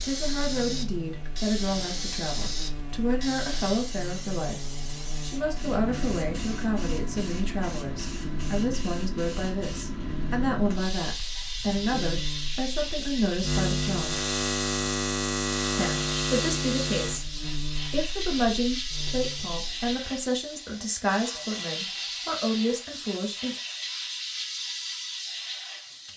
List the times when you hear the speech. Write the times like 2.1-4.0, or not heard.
0.0-14.2, 15.8-17.2, 17.9-23.6.